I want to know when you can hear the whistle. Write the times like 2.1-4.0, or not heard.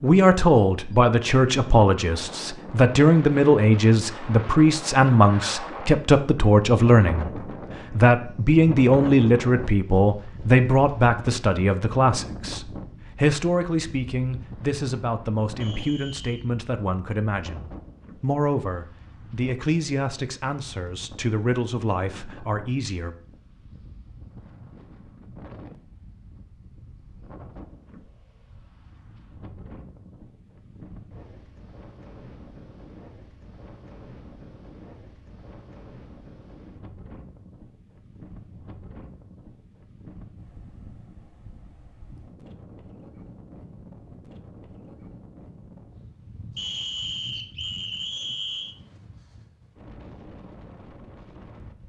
15.6-16.4, 46.5-48.8.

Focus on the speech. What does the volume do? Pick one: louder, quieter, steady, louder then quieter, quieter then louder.
quieter.